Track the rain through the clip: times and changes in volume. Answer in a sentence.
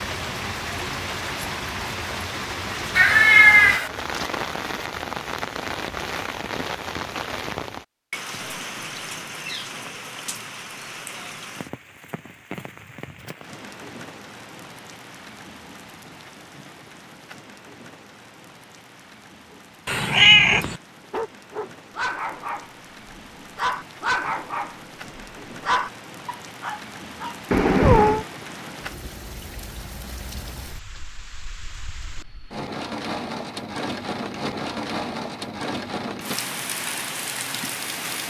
The rain can be heard from 0.0 to 38.2 s, getting quieter then louder.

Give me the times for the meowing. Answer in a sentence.
The meowing can be heard from 3.0 to 3.9 s, from 19.9 to 20.8 s and from 27.5 to 28.2 s.